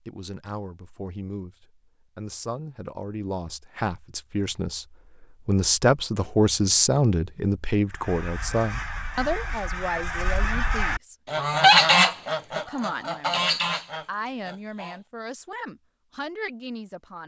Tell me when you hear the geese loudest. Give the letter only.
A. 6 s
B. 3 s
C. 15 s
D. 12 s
D.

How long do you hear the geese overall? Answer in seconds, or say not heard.
7 s.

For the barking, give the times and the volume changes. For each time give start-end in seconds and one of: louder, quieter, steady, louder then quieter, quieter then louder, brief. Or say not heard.
not heard.